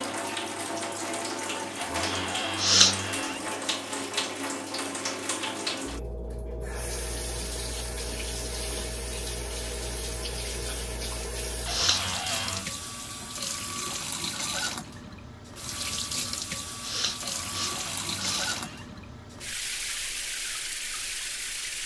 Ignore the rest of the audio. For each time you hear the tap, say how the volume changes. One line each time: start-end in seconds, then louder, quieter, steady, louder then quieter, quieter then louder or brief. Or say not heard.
0.0-21.8 steady.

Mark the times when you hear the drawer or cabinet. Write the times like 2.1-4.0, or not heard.
1.8-3.5, 11.7-12.7, 17.2-18.9.